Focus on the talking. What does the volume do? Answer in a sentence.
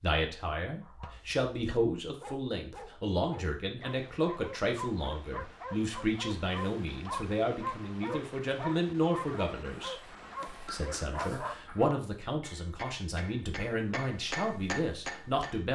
The volume of the talking stays about the same.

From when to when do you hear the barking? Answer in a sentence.
You can hear the barking from 0.8 to 11.7 s.